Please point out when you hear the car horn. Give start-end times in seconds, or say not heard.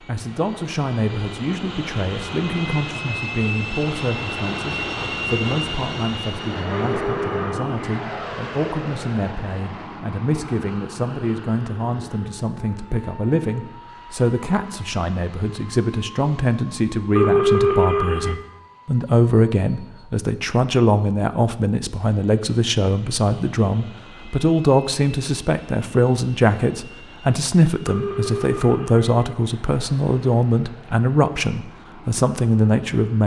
6.7-8.2, 17.1-18.4, 27.9-29.4.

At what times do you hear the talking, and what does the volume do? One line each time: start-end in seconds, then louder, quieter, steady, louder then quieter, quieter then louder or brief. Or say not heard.
0.1-33.2 louder.